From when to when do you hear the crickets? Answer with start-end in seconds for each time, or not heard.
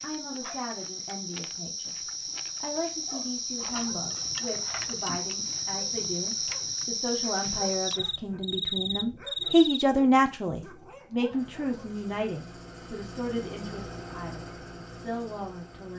0.0-9.8.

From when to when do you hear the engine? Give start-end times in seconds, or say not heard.
11.3-15.9.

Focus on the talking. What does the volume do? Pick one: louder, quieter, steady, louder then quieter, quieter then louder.
louder then quieter.